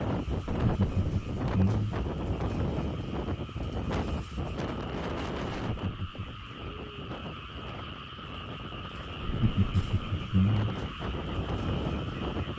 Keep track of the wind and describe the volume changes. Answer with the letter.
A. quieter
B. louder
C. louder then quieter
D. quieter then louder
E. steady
D.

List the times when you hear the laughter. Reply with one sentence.
You can hear the laughter from 0.5 to 2.0 s, from 5.7 to 6.5 s and from 9.2 to 10.8 s.